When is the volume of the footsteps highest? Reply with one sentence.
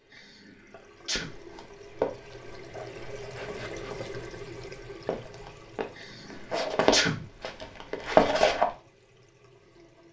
The volume of the footsteps peaks at 8 seconds.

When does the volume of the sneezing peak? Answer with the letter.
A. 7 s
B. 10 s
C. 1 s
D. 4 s
A.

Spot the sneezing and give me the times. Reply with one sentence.
The sneezing can be heard from 0.1 to 1.3 s and from 6.0 to 7.2 s.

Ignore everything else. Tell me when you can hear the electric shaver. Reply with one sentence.
The electric shaver can't be heard in this clip.